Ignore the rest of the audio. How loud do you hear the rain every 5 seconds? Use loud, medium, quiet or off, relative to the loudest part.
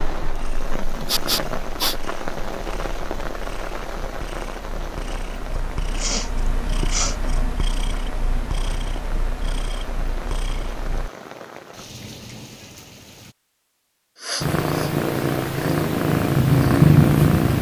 loud, medium, medium, off.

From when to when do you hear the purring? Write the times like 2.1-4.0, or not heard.
0.0-11.1, 14.4-17.5.